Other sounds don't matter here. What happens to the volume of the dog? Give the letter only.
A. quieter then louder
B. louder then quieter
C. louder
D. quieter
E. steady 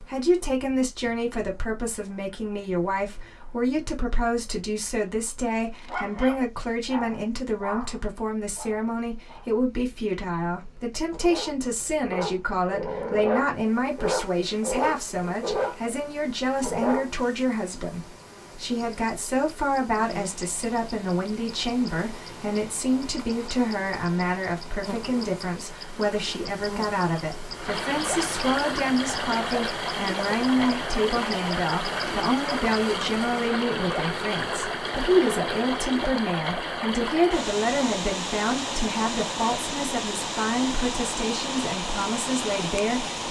A.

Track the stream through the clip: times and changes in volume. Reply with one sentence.
The stream can be heard from 20.1 to 43.2 s, getting louder.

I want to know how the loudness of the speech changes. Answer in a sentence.
The loudness of the speech stays about the same.